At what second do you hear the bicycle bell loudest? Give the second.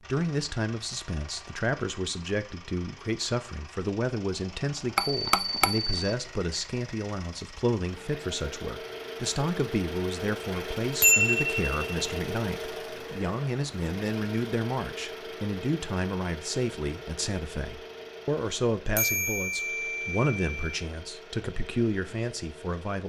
11 s.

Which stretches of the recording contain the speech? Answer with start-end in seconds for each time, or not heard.
0.1-23.0.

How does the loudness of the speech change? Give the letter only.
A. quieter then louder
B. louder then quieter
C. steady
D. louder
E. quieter
C.